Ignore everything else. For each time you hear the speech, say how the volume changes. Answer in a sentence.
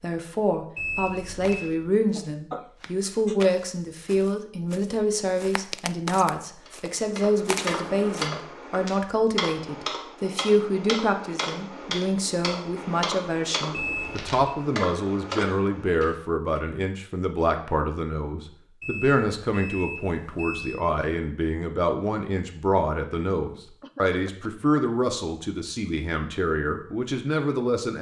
You can hear the speech from 0.0 to 27.9 s, at a steady volume.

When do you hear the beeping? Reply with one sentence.
You can hear the beeping from 0.8 to 1.7 s, from 13.7 to 14.3 s and from 18.8 to 20.8 s.